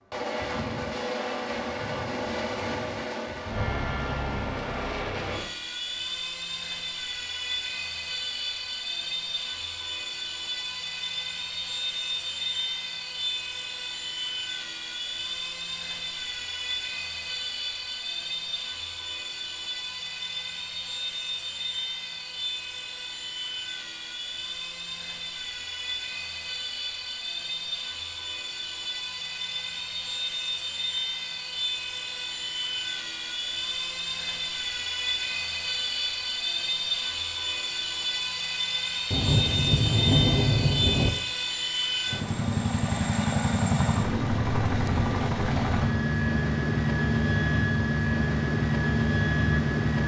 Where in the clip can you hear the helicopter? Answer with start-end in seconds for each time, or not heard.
0.1-50.0.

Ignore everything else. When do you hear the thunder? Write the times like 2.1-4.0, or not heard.
39.1-41.1.